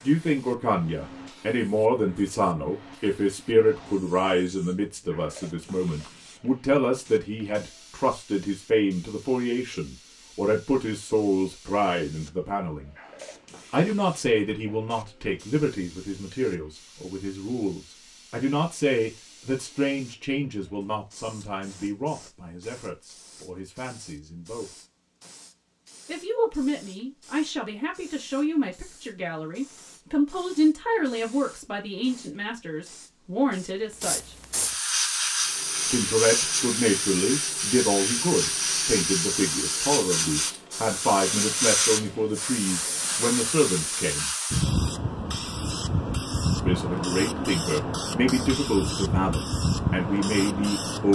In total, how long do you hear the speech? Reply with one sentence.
The speech can be heard for 45 seconds in total.